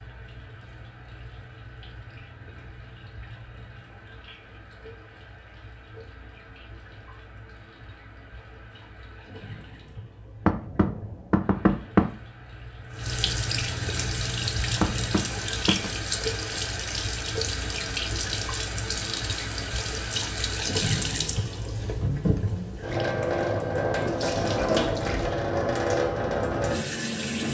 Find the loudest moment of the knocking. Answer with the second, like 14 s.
12 s.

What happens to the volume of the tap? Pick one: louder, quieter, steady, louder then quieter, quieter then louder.
louder.